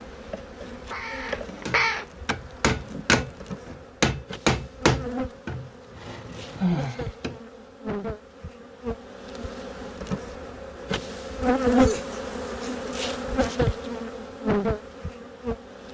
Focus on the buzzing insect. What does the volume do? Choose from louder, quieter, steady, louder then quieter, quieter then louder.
louder.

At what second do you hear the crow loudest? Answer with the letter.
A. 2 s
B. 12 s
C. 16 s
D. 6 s
A.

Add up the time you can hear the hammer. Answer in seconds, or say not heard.
6 s.